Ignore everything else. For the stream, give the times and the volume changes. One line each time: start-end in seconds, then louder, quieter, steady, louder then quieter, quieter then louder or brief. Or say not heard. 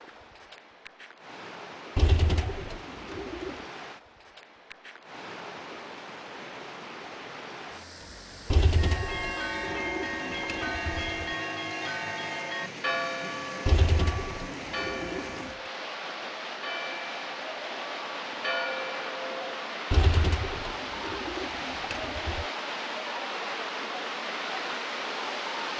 0.0-25.7 louder.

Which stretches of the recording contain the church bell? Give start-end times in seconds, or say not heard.
8.7-19.8.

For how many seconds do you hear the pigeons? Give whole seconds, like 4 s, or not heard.
9 s.